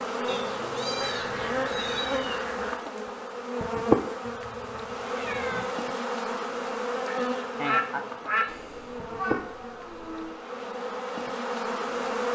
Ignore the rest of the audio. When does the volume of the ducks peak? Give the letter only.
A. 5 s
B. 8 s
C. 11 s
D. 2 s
B.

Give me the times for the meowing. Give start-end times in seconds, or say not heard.
0.2-2.4, 4.2-5.7, 8.4-10.3.